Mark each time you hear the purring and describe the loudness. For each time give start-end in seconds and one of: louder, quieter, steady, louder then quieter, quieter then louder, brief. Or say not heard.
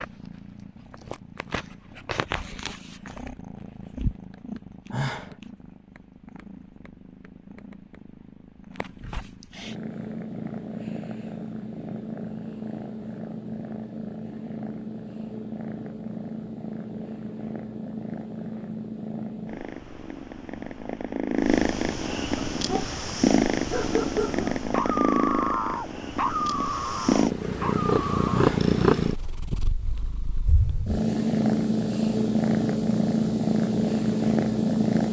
0.0-35.0 louder.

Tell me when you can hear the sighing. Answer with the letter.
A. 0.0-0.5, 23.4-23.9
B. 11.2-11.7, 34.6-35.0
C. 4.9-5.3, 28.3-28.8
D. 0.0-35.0
C.